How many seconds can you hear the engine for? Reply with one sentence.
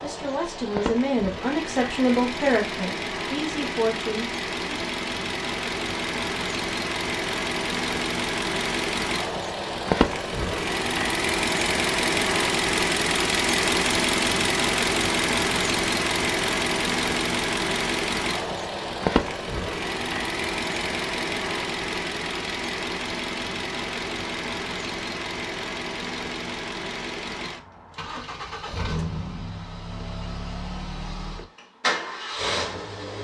The engine can be heard for 33 seconds in total.